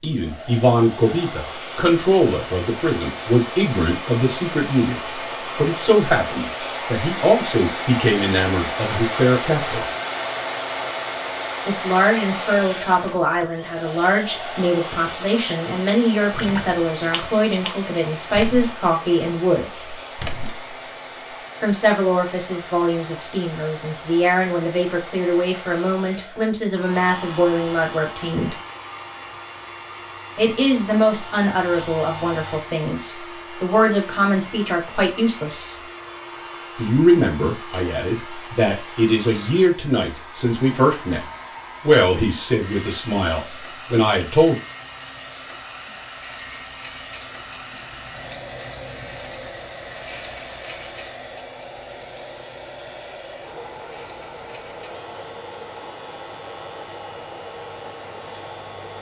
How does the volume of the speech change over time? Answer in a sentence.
The loudness of the speech stays about the same.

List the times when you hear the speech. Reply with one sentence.
You can hear the speech from 0.0 to 9.8 s, from 11.7 to 19.9 s, from 21.6 to 28.6 s, from 30.4 to 35.8 s and from 36.8 to 44.5 s.